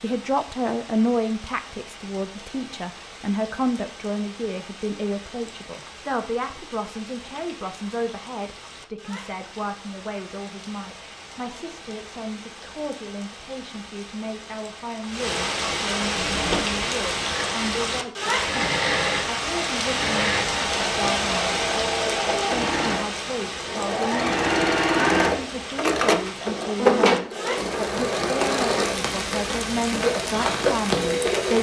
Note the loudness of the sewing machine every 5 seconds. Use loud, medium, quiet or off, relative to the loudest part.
off, off, off, medium, loud, loud, loud.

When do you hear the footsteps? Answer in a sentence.
The footsteps can't be heard in this clip.